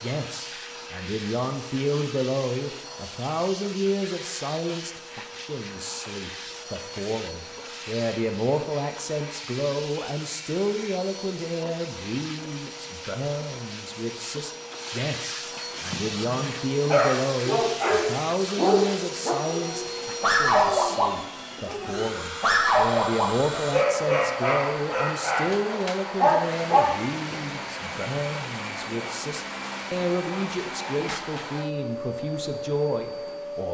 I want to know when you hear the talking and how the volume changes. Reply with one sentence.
You can hear the talking from 0.0 to 33.6 s, at a steady volume.